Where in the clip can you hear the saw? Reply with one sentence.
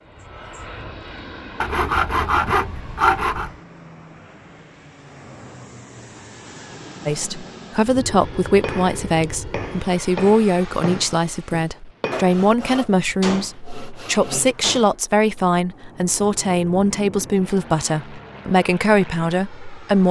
The saw can be heard from 1.6 to 3.5 s and from 12.1 to 14.7 s.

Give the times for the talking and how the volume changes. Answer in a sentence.
The talking can be heard from 7.0 to 20.0 s, at a steady volume.